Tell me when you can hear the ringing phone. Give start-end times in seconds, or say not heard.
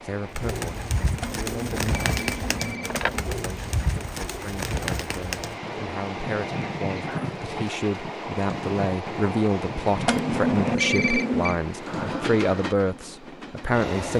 1.2-3.2, 10.1-11.6.